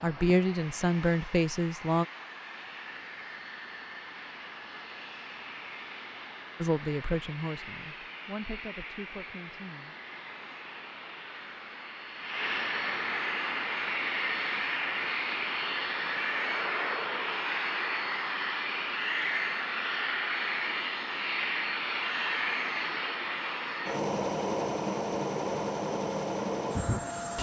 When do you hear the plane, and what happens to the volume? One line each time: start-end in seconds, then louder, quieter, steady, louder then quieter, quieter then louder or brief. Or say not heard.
0.0-27.3 louder.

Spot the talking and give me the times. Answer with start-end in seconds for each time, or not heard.
0.0-2.0, 6.6-9.9.